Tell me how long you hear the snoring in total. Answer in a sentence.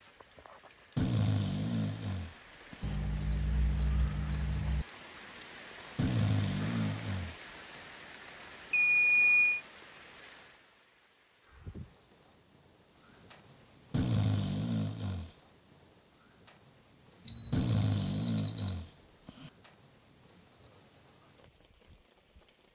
The snoring can be heard for 7 seconds in total.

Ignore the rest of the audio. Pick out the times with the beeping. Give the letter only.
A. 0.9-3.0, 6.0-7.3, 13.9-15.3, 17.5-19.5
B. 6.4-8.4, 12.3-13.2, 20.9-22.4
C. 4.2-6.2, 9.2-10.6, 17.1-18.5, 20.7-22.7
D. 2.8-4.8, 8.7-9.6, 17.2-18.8
D.